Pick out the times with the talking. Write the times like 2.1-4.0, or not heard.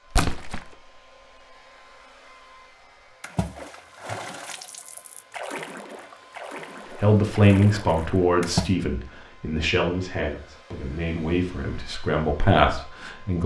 7.0-13.4.